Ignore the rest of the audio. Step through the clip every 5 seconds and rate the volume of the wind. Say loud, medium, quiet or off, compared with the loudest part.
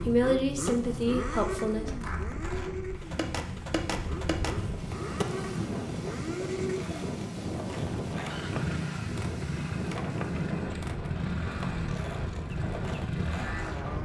medium, loud, loud.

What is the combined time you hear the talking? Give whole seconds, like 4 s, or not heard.
2 s.